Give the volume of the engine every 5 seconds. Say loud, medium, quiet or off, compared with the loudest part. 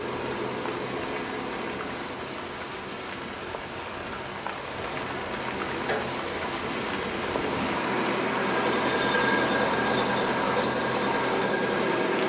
medium, loud, loud.